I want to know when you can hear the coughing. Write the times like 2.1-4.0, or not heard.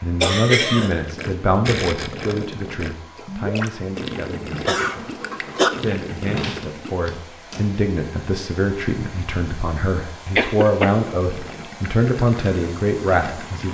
0.2-1.4, 4.7-5.7, 10.3-10.9.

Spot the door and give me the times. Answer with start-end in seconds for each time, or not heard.
6.3-7.8.